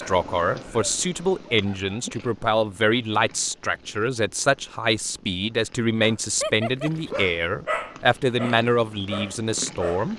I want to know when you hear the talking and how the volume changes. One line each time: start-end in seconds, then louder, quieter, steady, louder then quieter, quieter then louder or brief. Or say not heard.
0.0-10.1 steady.